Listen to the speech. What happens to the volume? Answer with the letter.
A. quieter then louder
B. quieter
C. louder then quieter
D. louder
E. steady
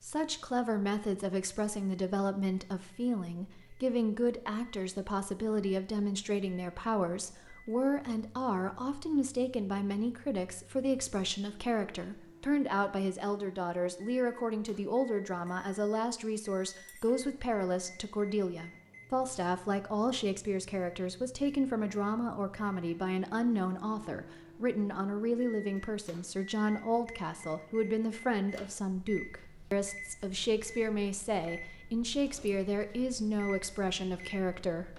E.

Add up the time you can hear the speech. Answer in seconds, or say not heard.
35 s.